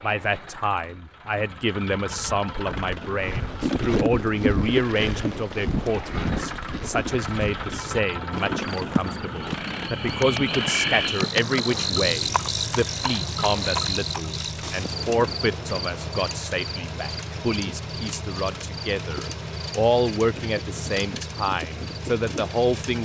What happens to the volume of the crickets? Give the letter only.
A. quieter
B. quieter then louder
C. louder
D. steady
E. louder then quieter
A.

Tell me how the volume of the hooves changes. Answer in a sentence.
The loudness of the hooves goes down.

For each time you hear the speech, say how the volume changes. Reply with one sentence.
The speech can be heard from 0.0 to 23.0 s, at a steady volume.